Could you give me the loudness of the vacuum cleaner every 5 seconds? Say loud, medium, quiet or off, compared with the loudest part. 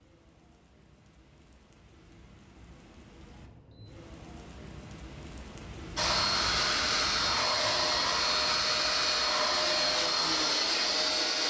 off, loud, loud.